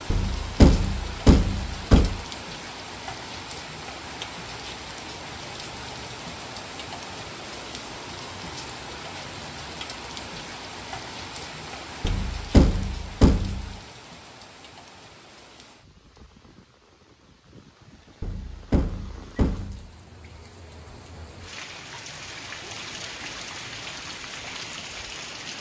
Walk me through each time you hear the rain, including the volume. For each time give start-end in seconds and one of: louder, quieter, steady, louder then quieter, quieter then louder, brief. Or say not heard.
0.0-25.5 quieter then louder.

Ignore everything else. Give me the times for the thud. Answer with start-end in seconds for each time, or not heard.
0.1-2.2, 12.0-13.8, 18.2-19.9.